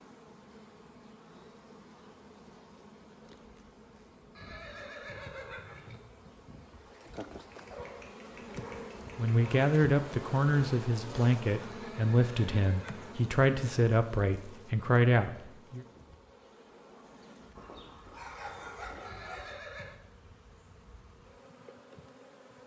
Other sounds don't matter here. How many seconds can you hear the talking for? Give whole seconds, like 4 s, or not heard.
7 s.